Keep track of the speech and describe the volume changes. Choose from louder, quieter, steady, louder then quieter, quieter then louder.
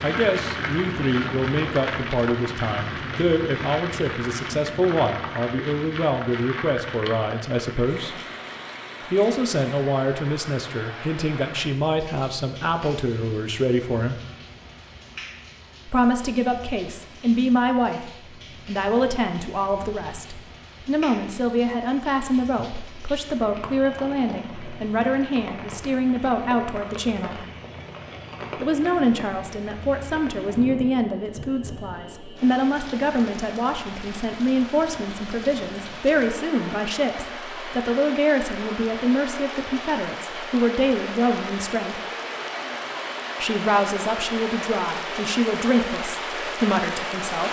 steady.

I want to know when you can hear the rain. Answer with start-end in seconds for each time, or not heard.
0.0-47.4.